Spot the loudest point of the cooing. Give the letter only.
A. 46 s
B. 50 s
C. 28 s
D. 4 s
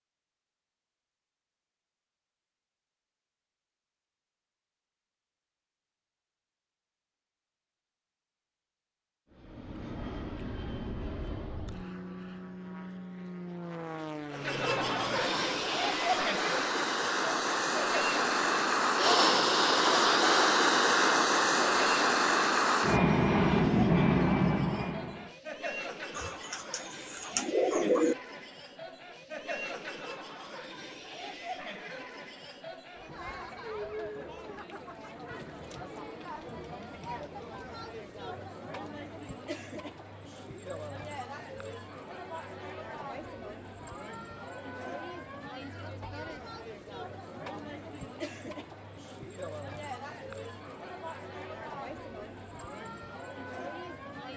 C.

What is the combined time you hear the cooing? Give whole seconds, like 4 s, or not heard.
2 s.